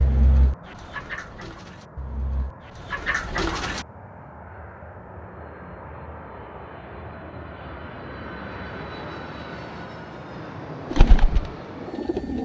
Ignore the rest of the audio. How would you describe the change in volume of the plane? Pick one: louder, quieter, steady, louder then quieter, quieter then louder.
louder.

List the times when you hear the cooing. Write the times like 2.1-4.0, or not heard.
0.0-3.9, 10.9-12.4.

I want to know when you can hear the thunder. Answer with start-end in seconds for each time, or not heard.
not heard.